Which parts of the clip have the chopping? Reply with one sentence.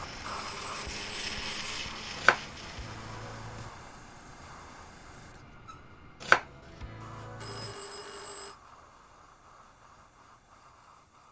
The chopping can be heard from 2.1 to 3.7 s and from 6.2 to 7.8 s.